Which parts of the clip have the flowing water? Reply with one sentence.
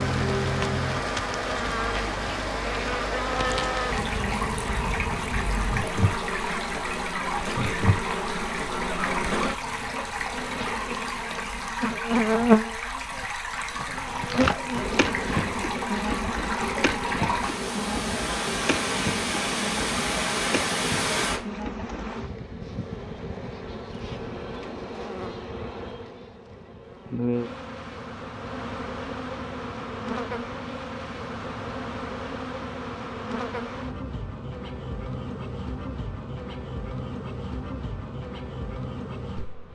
The flowing water can be heard from 0.0 to 21.4 s.